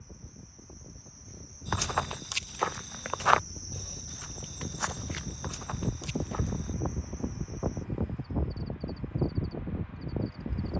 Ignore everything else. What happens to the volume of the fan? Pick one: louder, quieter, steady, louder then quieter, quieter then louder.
louder.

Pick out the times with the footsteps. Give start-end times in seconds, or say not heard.
1.6-6.8.